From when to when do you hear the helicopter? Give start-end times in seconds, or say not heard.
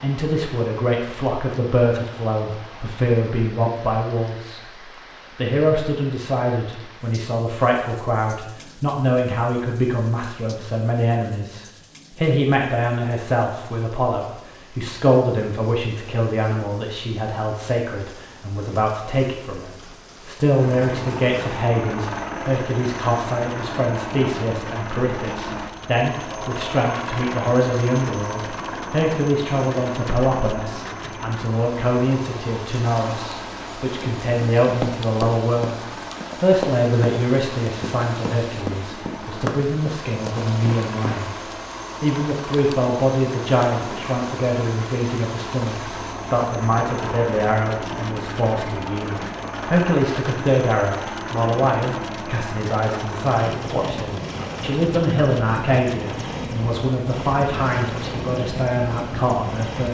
20.6-59.9.